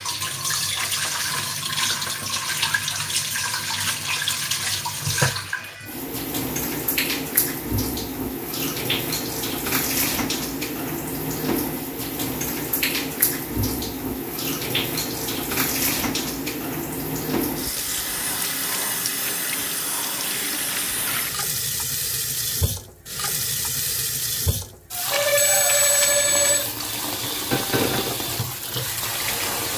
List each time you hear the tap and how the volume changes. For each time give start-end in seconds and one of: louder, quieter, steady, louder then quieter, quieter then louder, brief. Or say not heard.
0.0-29.7 steady.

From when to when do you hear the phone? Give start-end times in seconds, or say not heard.
25.1-26.7.